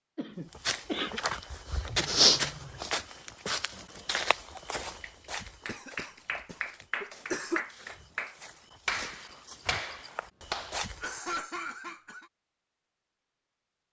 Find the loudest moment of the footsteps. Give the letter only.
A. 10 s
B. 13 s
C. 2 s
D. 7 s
C.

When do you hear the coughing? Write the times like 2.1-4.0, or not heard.
0.1-1.2, 5.7-7.6, 11.0-12.3.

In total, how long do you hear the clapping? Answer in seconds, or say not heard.
6 s.